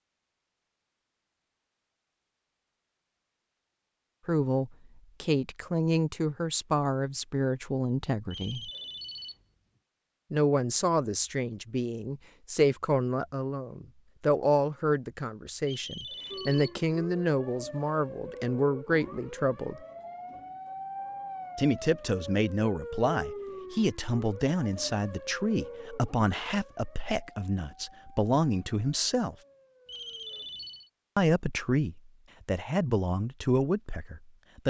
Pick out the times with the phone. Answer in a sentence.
You can hear the phone from 8.3 to 9.4 s, from 15.7 to 16.8 s and from 29.9 to 30.9 s.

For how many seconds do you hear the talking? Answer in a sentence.
The talking can be heard for 25 seconds in total.